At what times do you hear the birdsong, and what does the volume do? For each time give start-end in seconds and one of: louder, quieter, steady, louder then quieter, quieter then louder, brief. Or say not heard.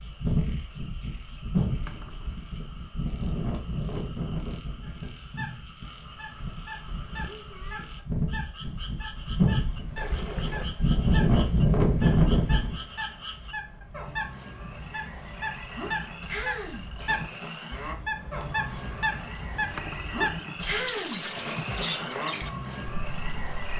4.8-23.7 louder.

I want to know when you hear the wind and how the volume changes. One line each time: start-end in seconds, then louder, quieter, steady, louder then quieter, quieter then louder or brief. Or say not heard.
0.0-12.8 quieter then louder.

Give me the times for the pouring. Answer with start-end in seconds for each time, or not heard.
1.6-2.5, 9.9-10.7, 19.5-21.9.